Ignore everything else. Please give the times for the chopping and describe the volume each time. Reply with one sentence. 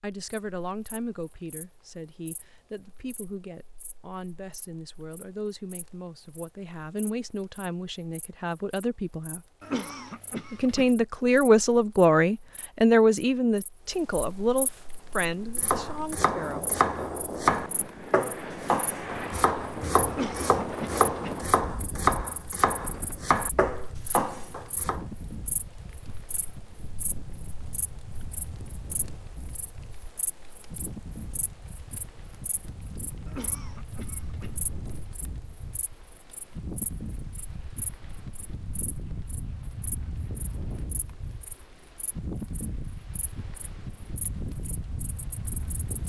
The chopping can be heard from 15.6 to 25.0 s, at a steady volume.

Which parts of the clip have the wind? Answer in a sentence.
You can hear the wind from 14.6 to 46.0 s.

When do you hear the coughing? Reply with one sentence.
You can hear the coughing from 9.6 to 10.9 s, from 20.1 to 21.4 s and from 33.2 to 34.5 s.